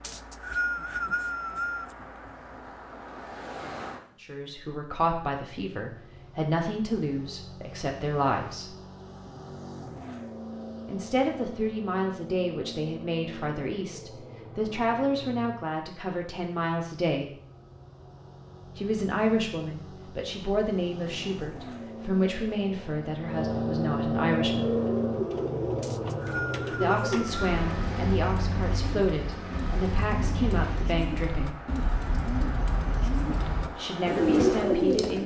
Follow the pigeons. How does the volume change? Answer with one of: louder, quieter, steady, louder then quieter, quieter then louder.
louder.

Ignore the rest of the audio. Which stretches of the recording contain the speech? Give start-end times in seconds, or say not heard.
4.2-8.8, 10.8-17.3, 18.8-24.8, 26.7-31.6, 33.8-35.2.